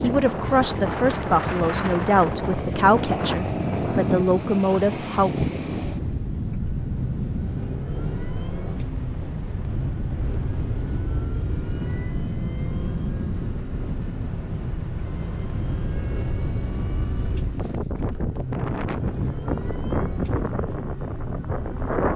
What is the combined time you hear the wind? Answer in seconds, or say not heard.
22 s.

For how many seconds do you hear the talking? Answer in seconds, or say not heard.
5 s.